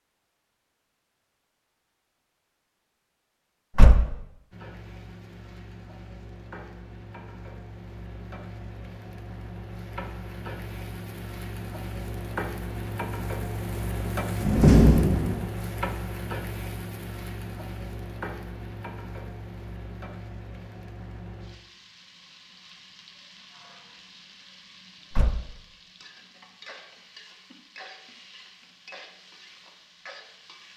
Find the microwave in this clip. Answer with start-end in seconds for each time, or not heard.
not heard.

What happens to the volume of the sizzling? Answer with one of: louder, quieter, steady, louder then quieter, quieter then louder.
louder then quieter.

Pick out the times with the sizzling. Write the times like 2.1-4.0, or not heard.
4.5-30.7.